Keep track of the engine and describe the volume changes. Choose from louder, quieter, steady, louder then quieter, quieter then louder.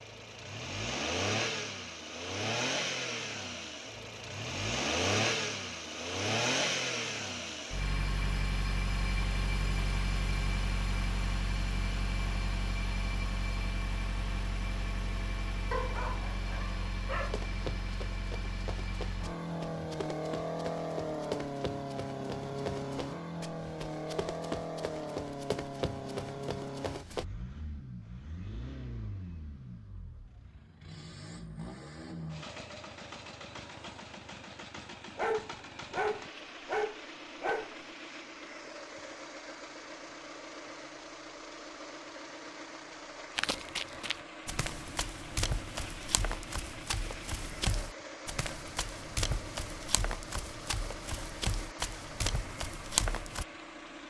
quieter.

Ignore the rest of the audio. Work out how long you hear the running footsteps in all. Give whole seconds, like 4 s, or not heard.
20 s.